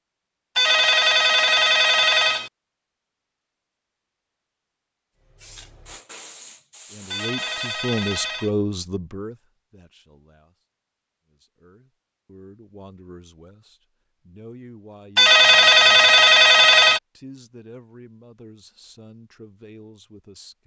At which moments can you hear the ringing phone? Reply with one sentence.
You can hear the ringing phone from 0.6 to 2.5 s, from 7.1 to 8.5 s and from 15.2 to 17.0 s.